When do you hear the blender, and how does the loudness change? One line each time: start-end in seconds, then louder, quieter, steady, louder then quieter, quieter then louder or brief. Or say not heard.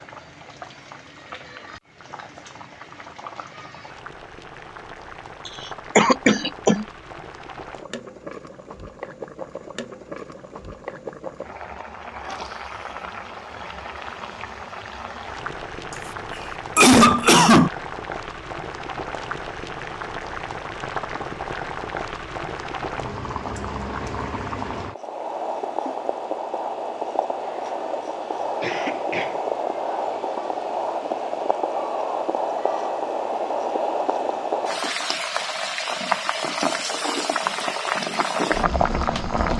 not heard.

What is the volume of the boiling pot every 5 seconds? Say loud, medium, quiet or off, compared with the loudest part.
quiet, quiet, medium, medium, medium, loud, loud, loud.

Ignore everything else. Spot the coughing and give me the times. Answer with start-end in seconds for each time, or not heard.
5.5-6.8, 16.8-17.7, 28.6-29.4.